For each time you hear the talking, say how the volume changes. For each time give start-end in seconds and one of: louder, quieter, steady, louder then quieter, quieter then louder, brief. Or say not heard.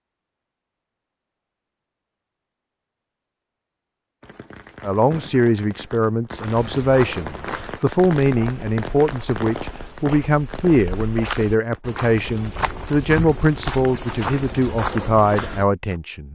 4.8-16.3 steady.